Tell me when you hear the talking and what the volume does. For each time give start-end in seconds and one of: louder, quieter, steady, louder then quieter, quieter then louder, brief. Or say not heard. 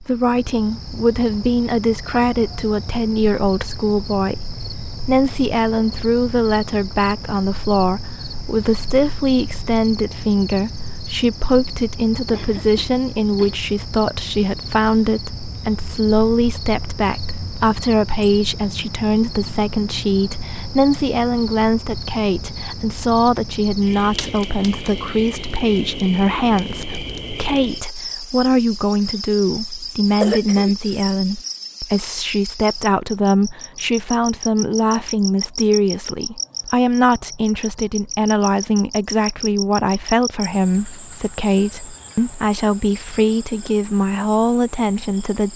0.0-45.5 steady.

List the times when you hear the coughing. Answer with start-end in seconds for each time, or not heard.
12.3-13.7, 30.2-31.1.